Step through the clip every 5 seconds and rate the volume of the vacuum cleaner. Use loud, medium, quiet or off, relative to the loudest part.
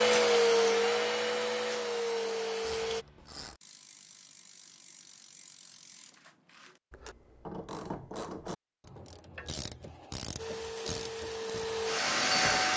loud, off, loud.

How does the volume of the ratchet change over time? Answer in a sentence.
The loudness of the ratchet goes up.